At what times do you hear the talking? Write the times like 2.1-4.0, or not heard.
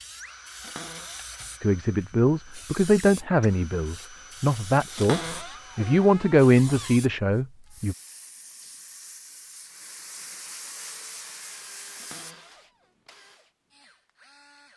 1.6-8.0.